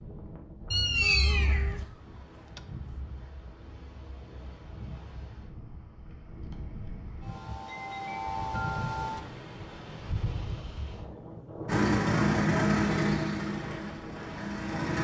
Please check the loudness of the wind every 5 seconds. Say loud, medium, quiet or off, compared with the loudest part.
medium, loud, loud.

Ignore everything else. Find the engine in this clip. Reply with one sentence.
The engine can be heard from 11.7 to 15.0 s.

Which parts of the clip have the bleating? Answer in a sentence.
The bleating can't be heard in this clip.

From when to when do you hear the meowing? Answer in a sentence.
The meowing can be heard from 0.7 to 1.9 s.